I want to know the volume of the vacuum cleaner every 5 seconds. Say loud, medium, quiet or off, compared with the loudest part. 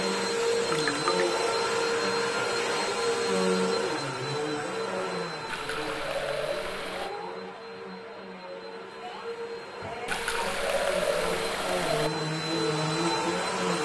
loud, medium, loud.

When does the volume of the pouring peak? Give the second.
11 s.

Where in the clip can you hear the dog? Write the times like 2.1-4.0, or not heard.
not heard.